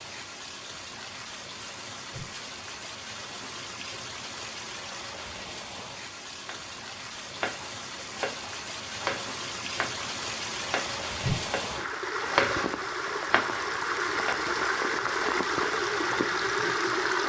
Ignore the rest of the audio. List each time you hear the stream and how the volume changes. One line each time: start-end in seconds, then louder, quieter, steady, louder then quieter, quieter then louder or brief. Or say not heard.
0.0-17.2 louder.